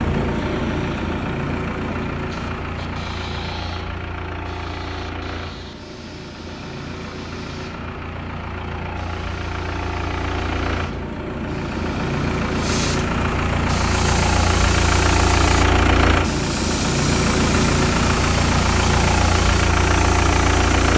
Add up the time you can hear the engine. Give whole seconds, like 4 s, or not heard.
21 s.